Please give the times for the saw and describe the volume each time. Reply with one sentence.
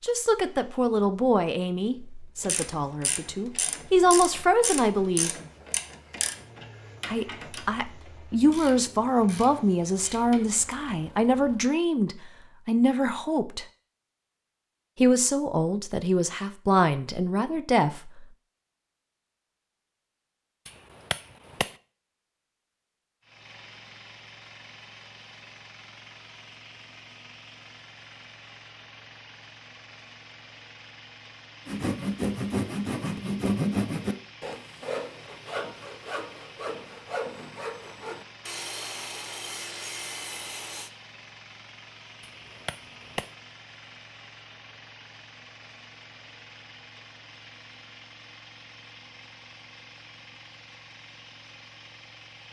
The saw can be heard from 31.6 to 40.9 s, getting quieter.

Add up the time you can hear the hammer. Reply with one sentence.
The hammer can be heard for 2 seconds in total.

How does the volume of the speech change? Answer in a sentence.
The volume of the speech stays about the same.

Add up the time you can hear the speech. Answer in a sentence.
You can hear the speech for 15 seconds altogether.